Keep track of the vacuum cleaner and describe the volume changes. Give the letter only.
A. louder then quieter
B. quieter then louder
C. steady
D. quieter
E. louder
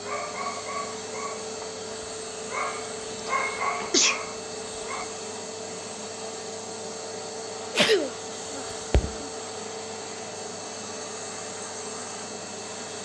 C.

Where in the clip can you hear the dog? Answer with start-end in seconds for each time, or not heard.
0.0-5.1.